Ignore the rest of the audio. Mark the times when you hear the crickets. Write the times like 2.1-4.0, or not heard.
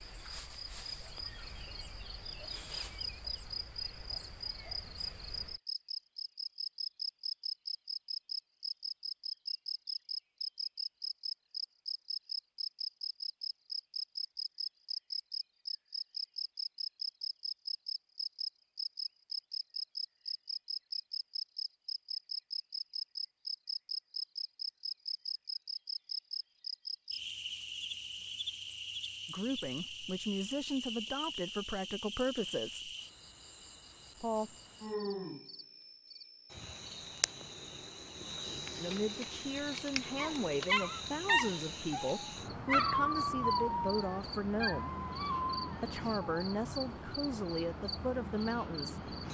0.0-49.2.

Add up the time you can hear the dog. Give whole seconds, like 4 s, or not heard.
6 s.